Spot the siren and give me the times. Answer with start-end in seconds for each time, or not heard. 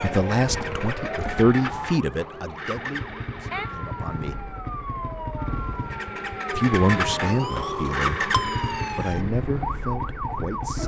0.0-10.8.